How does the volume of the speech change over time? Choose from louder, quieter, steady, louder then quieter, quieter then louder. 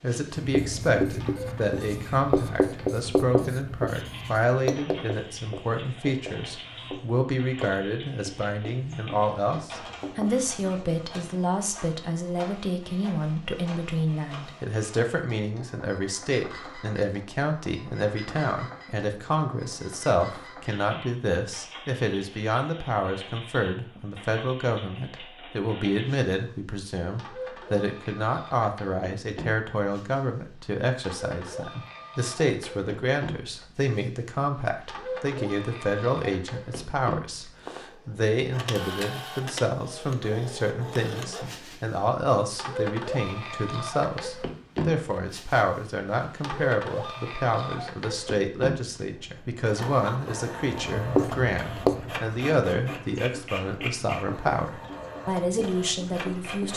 steady.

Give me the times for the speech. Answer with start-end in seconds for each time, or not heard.
0.0-56.7.